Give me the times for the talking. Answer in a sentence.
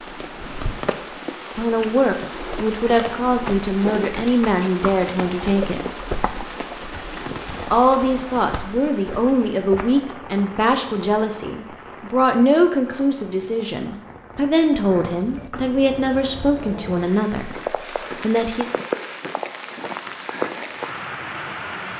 You can hear the talking from 1.6 to 5.8 s, from 7.7 to 17.6 s and from 18.2 to 18.6 s.